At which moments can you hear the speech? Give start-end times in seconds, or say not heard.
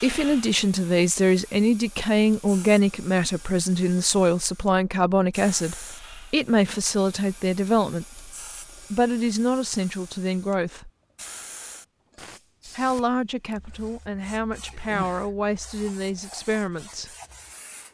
0.0-8.2, 8.9-10.9, 12.7-17.1.